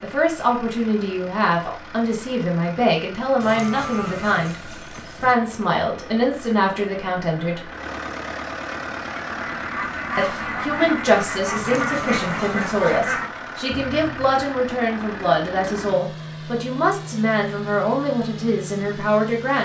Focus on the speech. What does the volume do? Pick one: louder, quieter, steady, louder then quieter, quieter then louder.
steady.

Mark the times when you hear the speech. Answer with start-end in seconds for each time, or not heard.
0.0-7.7, 10.2-19.5.